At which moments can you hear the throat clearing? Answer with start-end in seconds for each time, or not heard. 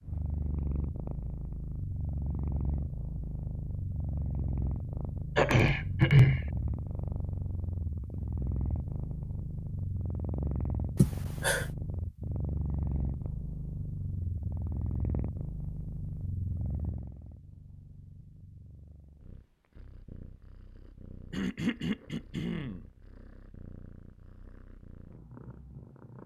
5.3-6.4, 10.9-11.7, 21.3-22.8.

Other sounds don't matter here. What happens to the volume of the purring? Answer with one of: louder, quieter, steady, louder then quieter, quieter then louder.
quieter.